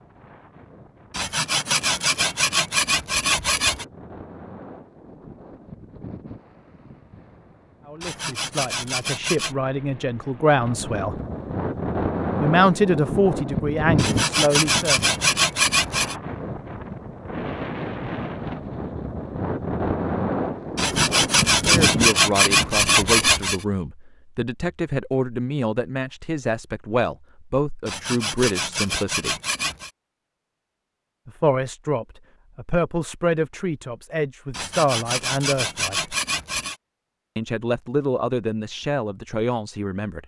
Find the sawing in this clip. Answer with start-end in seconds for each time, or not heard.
1.1-3.9, 8.0-9.6, 13.9-16.1, 20.8-23.6, 27.9-29.9, 34.5-36.8.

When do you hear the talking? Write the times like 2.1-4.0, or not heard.
7.8-11.2, 12.4-15.0, 21.6-29.4, 31.2-36.1, 37.4-40.2.